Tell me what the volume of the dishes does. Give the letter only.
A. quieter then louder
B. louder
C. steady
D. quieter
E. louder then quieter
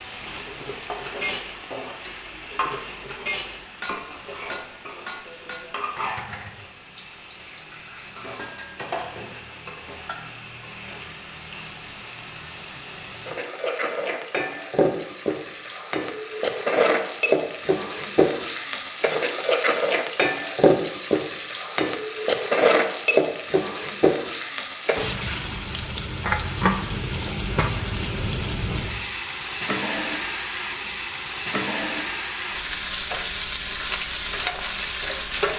D.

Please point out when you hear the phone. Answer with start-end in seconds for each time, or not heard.
not heard.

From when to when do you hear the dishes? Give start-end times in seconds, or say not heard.
0.2-10.2.